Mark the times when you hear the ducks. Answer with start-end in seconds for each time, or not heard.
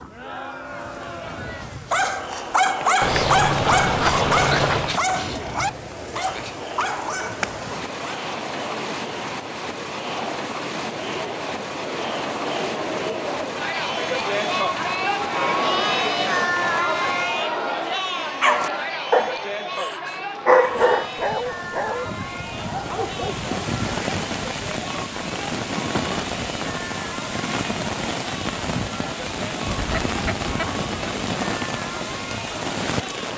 3.0-5.0, 29.6-31.1.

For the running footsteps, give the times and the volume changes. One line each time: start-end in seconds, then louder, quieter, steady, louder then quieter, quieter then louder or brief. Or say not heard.
not heard.